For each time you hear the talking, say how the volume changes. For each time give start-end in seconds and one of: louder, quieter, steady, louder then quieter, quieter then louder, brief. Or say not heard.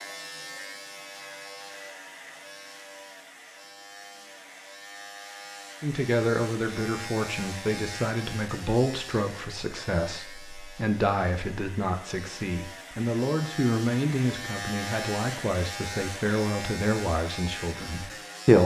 5.8-18.6 steady.